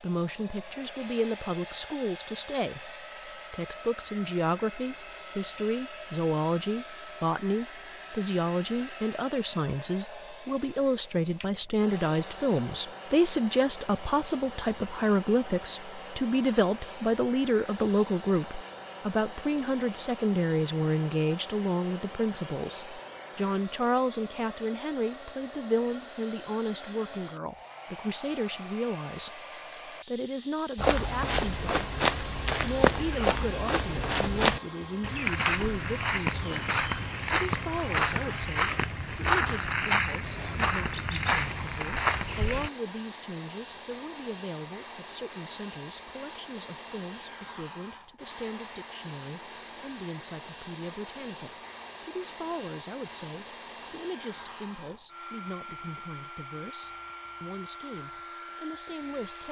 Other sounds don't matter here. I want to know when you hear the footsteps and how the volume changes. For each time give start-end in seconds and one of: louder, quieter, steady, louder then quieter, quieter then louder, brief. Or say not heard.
30.8-42.7 steady.